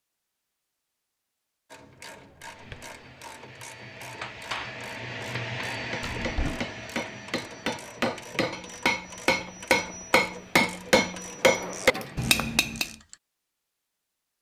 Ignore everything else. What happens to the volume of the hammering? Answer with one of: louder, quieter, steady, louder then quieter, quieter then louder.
louder.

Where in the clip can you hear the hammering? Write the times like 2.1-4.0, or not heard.
4.2-12.9.